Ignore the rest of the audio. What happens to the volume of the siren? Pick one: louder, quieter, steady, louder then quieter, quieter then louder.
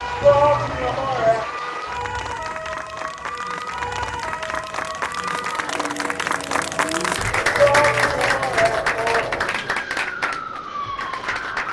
steady.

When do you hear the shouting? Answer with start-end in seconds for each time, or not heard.
0.2-1.4, 7.5-9.8.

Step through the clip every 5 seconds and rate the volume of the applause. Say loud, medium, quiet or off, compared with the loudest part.
medium, loud, medium.